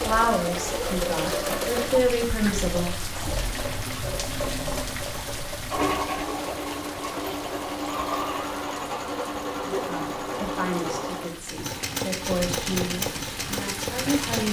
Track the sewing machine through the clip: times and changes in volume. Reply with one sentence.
The sewing machine can be heard from 0.0 to 14.4 s, at a steady volume.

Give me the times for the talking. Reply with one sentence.
The talking can be heard from 0.1 to 3.0 s and from 9.7 to 14.4 s.